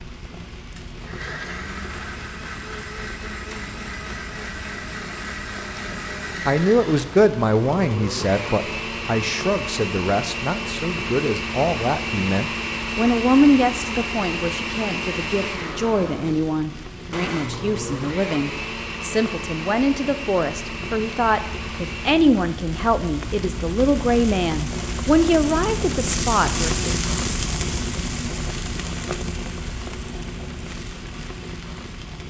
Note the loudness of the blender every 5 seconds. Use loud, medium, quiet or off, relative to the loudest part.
medium, loud, loud, loud, medium, off, off.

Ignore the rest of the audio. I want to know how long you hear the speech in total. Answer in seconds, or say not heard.
21 s.